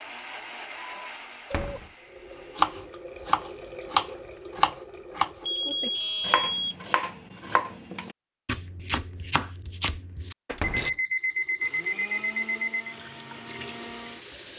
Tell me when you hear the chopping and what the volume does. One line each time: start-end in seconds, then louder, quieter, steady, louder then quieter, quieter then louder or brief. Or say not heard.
2.5-10.9 quieter.